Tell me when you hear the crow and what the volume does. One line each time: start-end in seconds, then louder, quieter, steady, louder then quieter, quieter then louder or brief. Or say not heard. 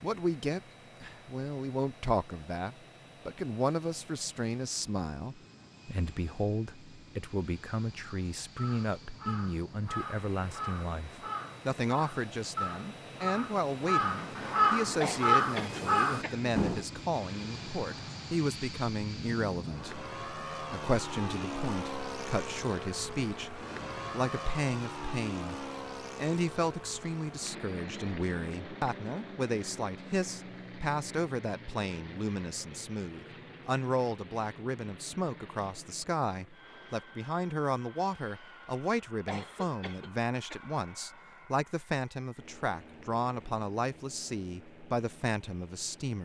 8.6-16.9 louder.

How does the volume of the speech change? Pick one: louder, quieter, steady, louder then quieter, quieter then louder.
steady.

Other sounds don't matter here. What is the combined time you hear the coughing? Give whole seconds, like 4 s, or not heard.
3 s.